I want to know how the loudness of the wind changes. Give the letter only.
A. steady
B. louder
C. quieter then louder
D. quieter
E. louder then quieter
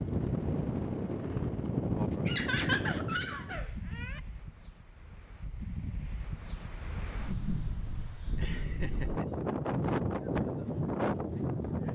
C.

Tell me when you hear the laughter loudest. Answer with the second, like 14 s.
3 s.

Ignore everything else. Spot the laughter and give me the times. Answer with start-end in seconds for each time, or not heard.
2.2-4.2, 8.3-9.2.